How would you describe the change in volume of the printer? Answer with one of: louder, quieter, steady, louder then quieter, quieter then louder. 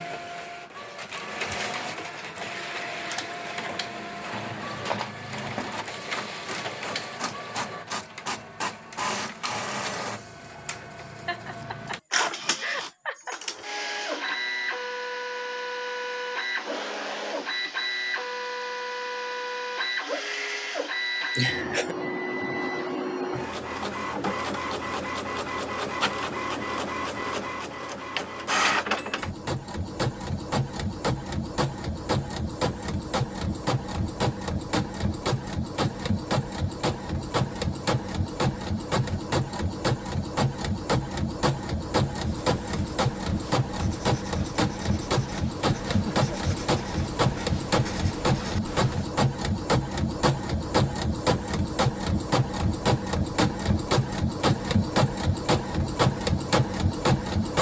louder.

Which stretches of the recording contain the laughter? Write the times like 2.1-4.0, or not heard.
11.2-13.3, 21.4-21.9, 45.9-46.4.